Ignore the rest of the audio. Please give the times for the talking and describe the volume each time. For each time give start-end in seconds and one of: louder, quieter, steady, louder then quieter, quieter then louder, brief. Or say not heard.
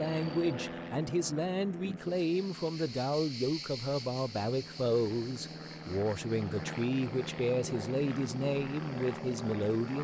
0.0-9.9 steady.